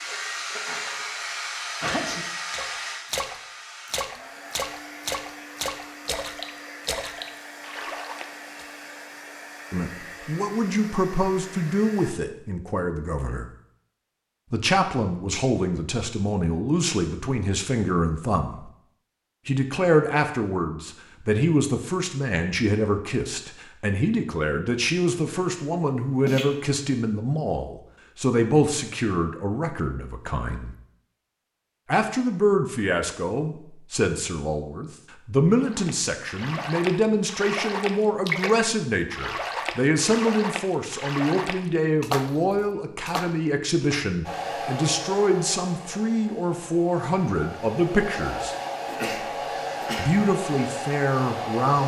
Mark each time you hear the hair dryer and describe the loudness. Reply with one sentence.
You can hear the hair dryer from 0.0 to 12.2 s, getting quieter; and from 44.2 to 51.8 s, getting quieter then louder.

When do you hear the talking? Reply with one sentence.
The talking can be heard from 9.7 to 13.4 s, from 14.5 to 18.6 s, from 19.4 to 30.8 s, from 31.9 to 48.5 s and from 50.0 to 51.8 s.